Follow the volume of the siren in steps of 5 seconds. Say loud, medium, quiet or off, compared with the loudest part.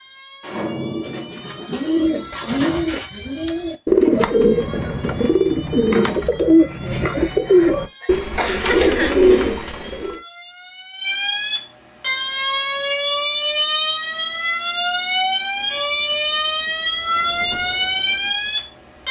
quiet, quiet, loud, loud.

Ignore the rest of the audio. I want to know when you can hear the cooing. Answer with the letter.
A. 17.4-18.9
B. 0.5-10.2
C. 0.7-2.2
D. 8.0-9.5
B.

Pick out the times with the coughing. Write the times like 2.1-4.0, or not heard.
8.0-9.5.